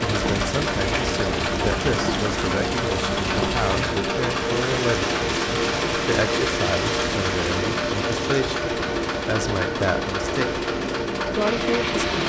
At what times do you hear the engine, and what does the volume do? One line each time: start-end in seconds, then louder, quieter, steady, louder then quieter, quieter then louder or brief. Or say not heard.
0.0-12.2 steady.